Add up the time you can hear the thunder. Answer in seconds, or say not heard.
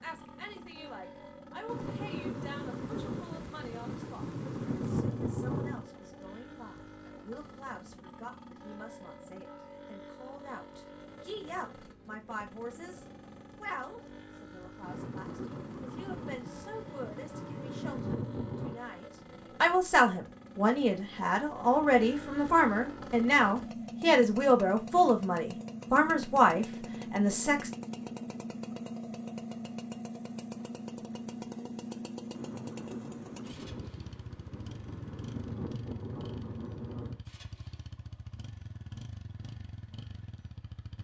13 s.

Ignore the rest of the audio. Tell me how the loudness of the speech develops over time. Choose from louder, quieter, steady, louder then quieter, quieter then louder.
louder.